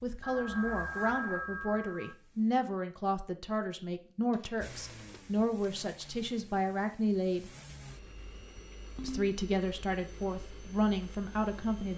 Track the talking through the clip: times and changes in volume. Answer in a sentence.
You can hear the talking from 0.0 to 7.5 s, at a steady volume; and briefly from 9.0 to 11.9 s.